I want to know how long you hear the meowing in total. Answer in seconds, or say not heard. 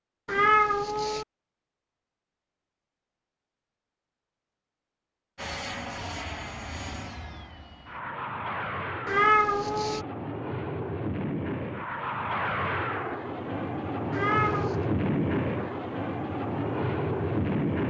3 s.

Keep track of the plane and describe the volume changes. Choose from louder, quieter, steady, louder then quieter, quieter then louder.
louder.